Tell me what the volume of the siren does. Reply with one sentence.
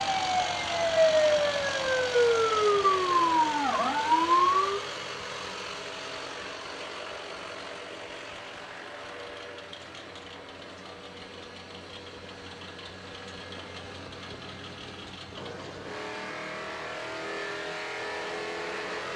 The volume of the siren stays about the same.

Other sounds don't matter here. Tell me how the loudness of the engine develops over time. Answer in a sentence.
The loudness of the engine goes down, then up.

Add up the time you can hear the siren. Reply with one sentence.
You can hear the siren for 5 seconds altogether.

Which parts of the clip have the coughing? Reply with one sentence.
You can't hear the coughing here.